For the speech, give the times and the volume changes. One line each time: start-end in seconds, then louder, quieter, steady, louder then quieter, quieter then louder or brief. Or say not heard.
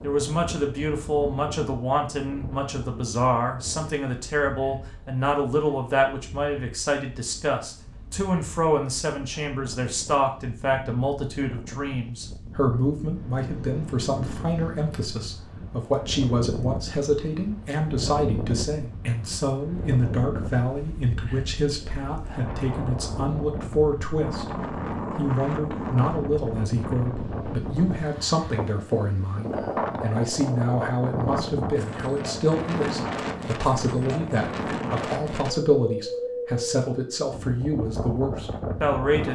0.0-24.6 steady
25.1-39.3 steady.